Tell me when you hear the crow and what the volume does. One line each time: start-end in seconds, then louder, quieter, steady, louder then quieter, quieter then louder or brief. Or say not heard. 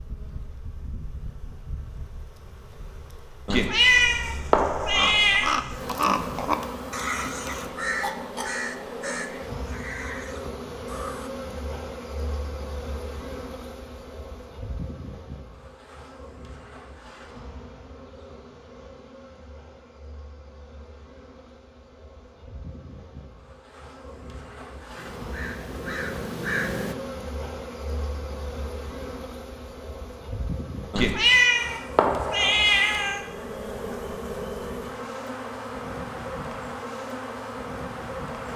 4.9-11.3 quieter
24.9-26.9 brief.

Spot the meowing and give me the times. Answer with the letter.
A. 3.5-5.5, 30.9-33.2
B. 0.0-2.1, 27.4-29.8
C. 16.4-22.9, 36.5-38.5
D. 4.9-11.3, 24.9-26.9
A.